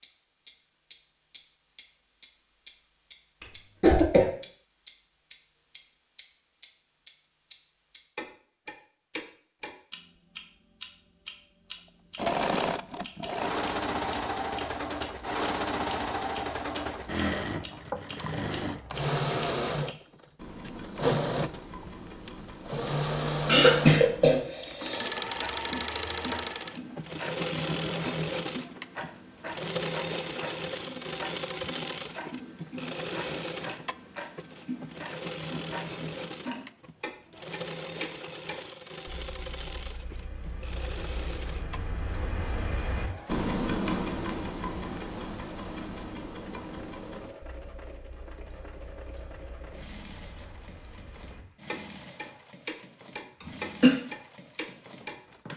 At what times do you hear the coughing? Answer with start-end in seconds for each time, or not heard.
3.4-4.2, 23.4-25.1, 53.4-54.0.